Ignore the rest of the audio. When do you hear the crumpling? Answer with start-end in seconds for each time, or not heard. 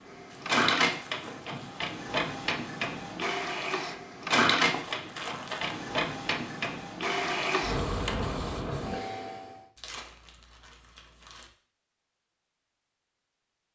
0.3-1.8, 4.6-5.8, 9.8-11.5.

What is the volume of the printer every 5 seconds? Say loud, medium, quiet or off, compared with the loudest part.
loud, loud, off.